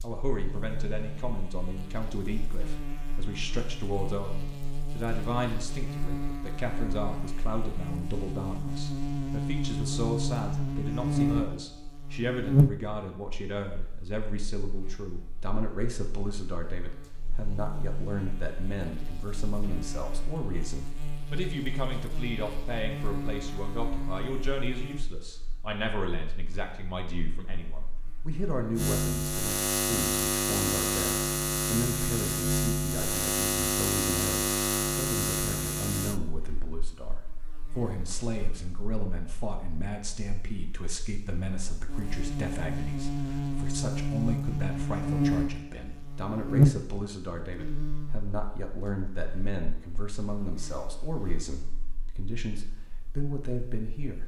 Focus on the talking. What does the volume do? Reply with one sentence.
The volume of the talking stays about the same.